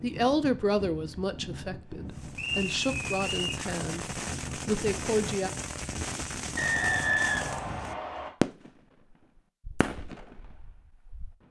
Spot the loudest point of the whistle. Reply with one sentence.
The volume of the whistle peaks at 7 seconds.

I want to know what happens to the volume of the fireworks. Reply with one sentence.
The loudness of the fireworks goes up, then down.